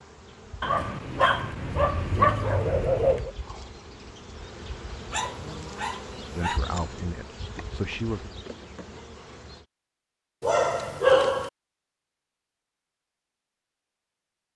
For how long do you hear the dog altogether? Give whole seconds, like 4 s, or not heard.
5 s.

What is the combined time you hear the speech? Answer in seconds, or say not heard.
2 s.